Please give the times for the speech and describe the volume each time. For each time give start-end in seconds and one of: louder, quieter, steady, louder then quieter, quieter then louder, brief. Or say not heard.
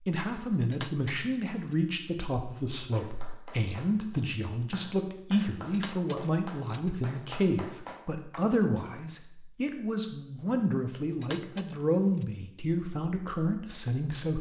0.1-14.3 steady.